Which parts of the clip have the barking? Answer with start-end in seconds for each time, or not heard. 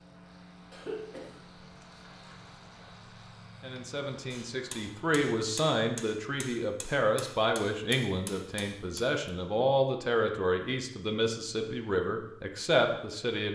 not heard.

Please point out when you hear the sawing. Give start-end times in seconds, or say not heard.
not heard.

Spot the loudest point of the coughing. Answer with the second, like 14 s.
1 s.